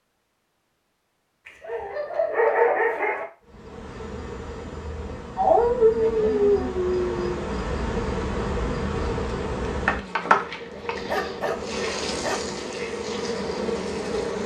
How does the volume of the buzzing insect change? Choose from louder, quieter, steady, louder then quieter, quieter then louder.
louder.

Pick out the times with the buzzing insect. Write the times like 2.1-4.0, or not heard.
3.5-14.4.